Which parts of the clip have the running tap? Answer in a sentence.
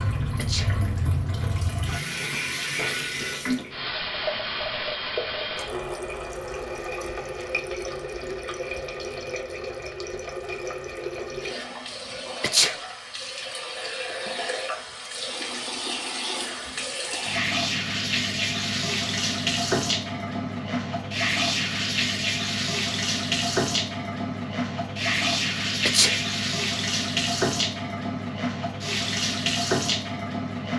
You can hear the running tap from 0.0 to 30.7 s.